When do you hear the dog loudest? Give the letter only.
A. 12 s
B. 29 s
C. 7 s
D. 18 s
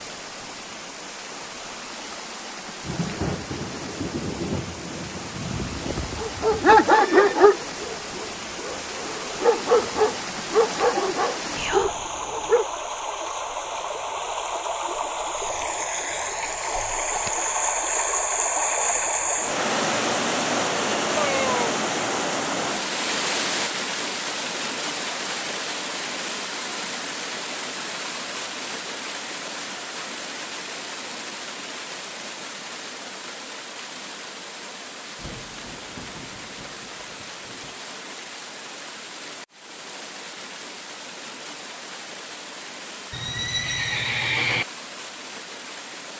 C.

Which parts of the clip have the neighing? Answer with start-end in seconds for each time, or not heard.
5.3-7.3, 21.1-21.9, 43.1-44.6.